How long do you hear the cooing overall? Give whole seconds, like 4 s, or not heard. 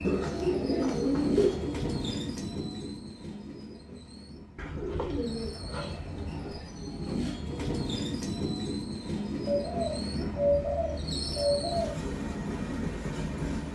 6 s.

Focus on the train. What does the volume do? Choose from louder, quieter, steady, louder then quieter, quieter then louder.
quieter then louder.